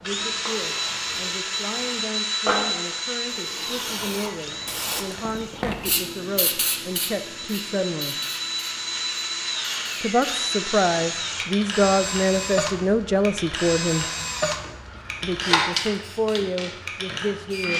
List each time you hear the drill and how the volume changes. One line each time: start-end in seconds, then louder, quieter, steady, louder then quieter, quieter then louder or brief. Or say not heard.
0.0-17.7 quieter then louder.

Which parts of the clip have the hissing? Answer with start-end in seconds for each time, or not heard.
0.0-17.7.